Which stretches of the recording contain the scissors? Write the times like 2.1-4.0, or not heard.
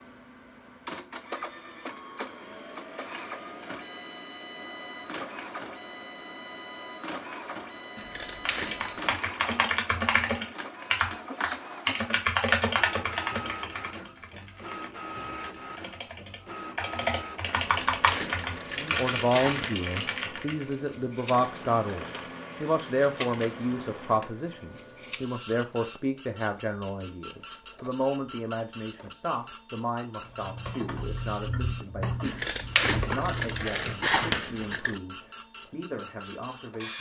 8.0-9.2, 17.6-19.7, 32.2-35.0.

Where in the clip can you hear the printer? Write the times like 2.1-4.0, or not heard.
0.0-36.9.